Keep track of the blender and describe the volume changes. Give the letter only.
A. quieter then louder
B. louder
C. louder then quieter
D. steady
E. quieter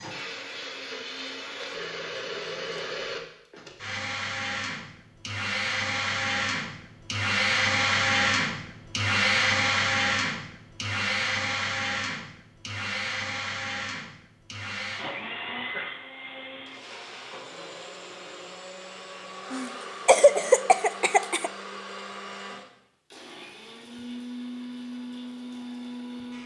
C.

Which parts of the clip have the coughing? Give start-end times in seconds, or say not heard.
19.5-21.5.